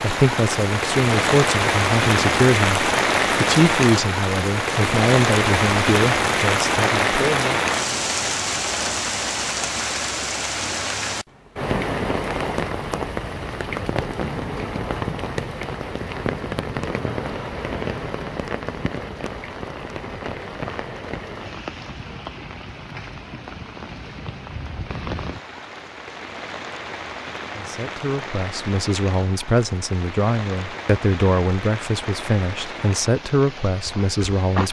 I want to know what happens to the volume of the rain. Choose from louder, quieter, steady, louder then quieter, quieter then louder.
quieter.